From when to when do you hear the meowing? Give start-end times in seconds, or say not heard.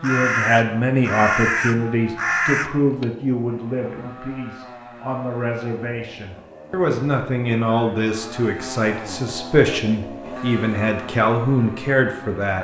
not heard.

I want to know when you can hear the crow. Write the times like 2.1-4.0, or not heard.
0.0-3.0.